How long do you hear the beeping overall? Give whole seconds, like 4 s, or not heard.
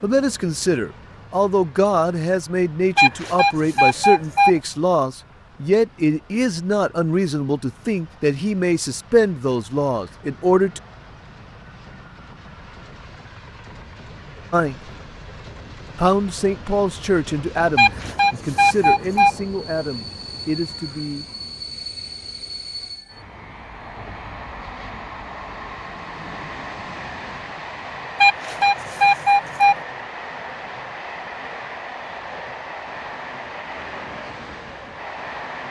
5 s.